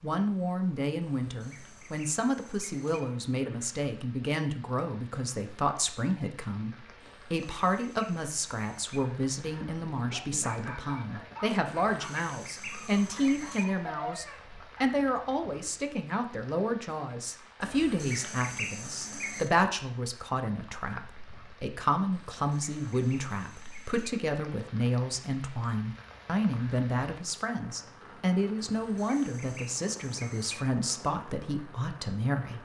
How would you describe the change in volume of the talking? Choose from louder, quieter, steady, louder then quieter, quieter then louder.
steady.